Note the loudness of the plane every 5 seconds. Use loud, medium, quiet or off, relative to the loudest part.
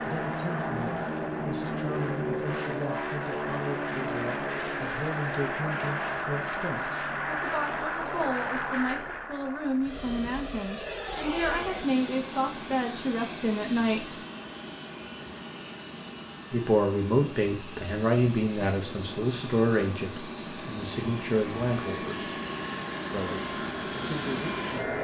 loud, loud, medium, medium, loud.